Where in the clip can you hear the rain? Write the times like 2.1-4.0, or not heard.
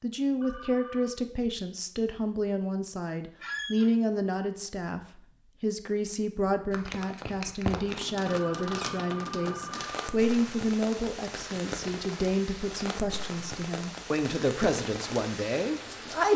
6.7-16.3.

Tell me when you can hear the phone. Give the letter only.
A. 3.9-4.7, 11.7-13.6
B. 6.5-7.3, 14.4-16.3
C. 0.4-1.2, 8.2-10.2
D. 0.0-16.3
C.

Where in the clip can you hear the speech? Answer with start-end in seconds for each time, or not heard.
0.0-16.3.